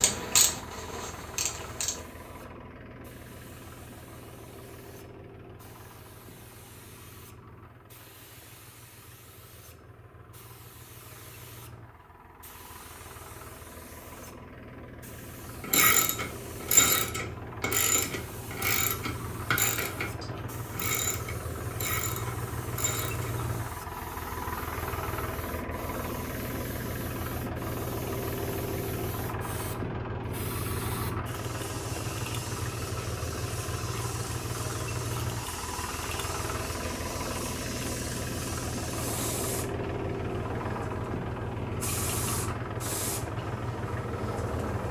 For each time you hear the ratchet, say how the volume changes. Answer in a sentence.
The ratchet can be heard briefly from 0.0 to 2.0 s; and from 15.6 to 23.4 s, getting quieter.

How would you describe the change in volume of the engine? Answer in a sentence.
The volume of the engine goes up.